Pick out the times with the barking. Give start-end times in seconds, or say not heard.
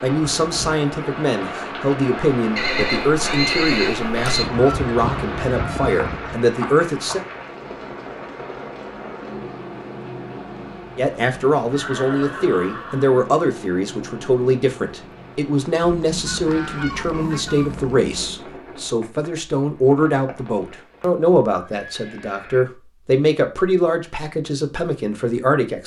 not heard.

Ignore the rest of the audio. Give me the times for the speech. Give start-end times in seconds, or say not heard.
0.0-7.2, 10.9-25.8.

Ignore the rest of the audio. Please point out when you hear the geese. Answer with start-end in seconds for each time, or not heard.
4.3-6.3, 15.8-18.4.